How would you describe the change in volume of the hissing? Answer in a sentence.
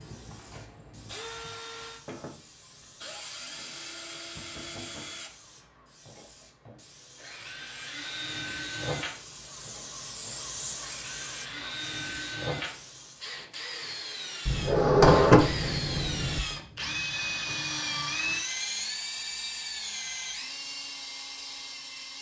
The loudness of the hissing goes up.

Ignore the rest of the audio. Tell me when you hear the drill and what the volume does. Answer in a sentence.
The drill can be heard from 0.0 to 22.1 s, getting louder.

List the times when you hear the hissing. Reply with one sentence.
You can hear the hissing from 0.0 to 13.4 s.